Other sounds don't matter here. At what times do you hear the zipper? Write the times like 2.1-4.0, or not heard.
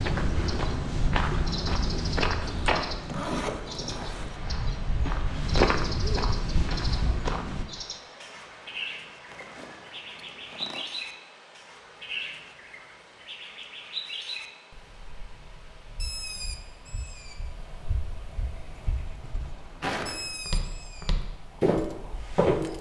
2.4-4.4, 9.2-10.8, 18.9-19.9.